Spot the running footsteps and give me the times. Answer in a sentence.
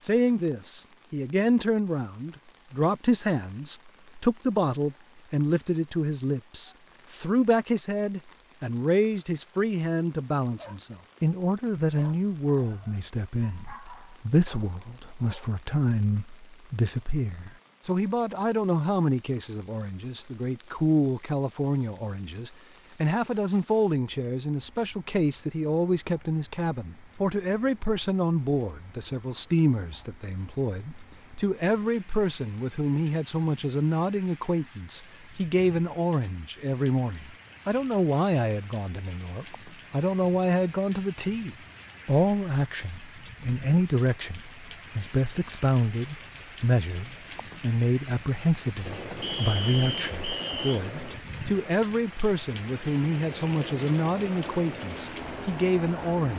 The running footsteps can't be heard in this clip.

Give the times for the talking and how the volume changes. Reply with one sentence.
You can hear the talking from 0.0 to 56.3 s, at a steady volume.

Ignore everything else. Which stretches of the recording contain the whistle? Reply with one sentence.
The whistle can be heard from 49.2 to 50.8 s.